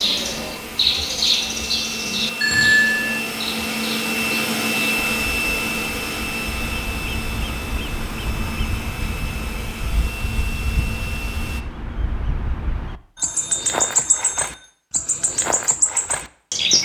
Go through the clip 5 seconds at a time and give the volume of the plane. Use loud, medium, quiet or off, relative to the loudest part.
loud, loud, medium, off.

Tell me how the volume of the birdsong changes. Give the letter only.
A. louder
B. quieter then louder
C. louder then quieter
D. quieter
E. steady
B.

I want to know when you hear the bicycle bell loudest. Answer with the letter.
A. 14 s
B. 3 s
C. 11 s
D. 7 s
B.